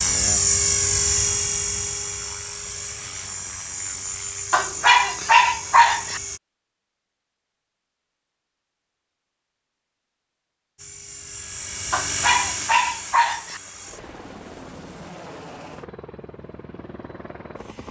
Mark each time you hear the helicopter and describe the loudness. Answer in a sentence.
The helicopter can be heard from 0.0 to 6.4 s, getting quieter; and from 10.8 to 17.8 s, getting quieter.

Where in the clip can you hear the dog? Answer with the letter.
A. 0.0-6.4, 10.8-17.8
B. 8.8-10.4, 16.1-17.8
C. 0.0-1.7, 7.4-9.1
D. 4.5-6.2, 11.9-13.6
D.